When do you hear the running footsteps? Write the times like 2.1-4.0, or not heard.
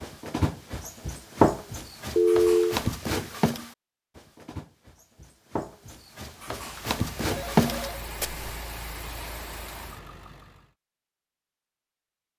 0.0-8.6.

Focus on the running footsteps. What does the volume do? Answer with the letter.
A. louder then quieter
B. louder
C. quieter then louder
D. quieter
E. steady
C.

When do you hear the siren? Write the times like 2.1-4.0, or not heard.
not heard.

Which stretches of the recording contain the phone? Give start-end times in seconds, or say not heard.
2.1-2.8, 7.2-8.1.